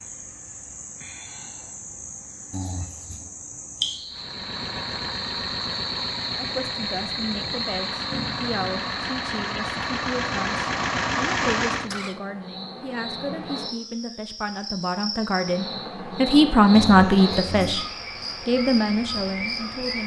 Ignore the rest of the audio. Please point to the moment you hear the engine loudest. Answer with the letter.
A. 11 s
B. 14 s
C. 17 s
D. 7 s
A.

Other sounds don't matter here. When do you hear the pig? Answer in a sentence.
The pig can't be heard in this clip.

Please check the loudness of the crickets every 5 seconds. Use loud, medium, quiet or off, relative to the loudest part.
medium, loud, medium, loud.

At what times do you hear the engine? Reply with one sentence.
The engine can be heard from 4.1 to 12.2 s.